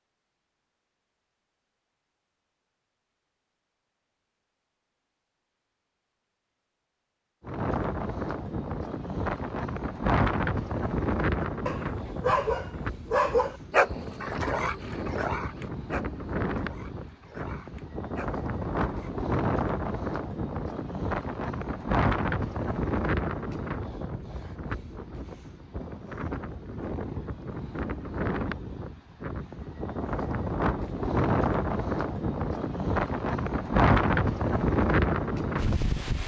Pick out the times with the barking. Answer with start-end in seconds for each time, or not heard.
11.4-19.1.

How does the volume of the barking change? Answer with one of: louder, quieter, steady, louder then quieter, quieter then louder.
quieter.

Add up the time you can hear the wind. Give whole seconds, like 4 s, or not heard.
29 s.